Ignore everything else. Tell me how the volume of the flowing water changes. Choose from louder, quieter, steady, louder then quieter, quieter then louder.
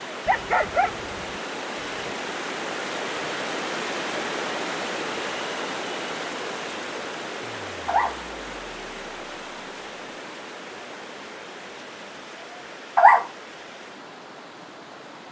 quieter.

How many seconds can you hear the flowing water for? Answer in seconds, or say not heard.
15 s.